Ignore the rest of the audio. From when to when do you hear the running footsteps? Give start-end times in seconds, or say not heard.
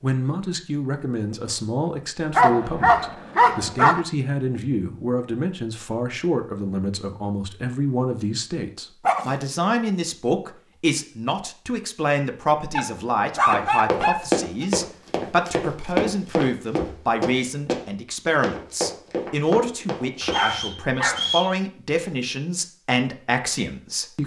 13.5-20.4.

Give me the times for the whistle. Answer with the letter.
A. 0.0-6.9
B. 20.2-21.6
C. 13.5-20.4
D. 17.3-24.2
B.